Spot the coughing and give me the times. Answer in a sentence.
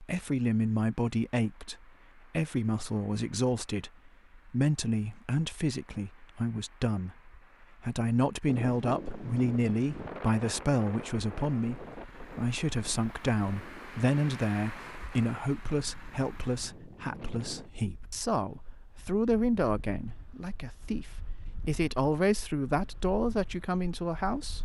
You can't hear the coughing here.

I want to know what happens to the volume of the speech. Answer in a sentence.
The volume of the speech stays about the same.